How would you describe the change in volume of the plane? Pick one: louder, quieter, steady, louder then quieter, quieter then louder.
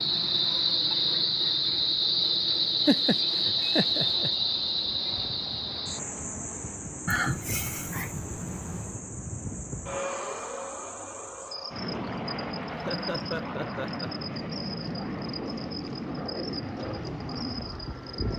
louder.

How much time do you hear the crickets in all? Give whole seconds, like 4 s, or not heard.
18 s.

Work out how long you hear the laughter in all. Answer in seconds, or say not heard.
5 s.